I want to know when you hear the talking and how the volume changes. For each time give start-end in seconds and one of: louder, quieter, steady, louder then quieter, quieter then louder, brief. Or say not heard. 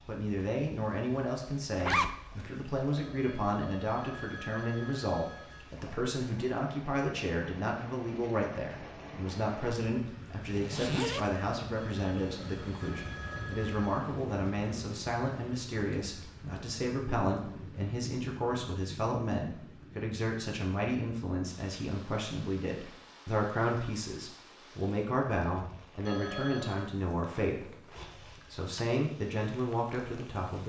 0.1-30.6 steady.